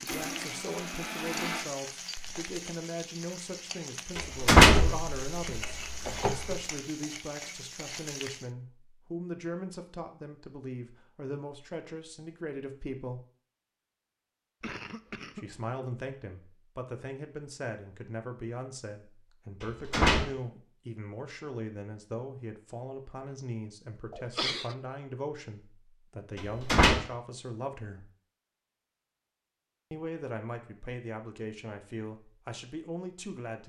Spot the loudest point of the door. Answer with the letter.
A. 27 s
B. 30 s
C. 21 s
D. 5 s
D.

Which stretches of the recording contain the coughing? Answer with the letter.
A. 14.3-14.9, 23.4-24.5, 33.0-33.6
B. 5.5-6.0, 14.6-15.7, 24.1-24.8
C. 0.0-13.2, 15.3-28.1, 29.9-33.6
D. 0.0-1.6
B.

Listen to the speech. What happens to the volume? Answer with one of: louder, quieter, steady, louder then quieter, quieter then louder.
steady.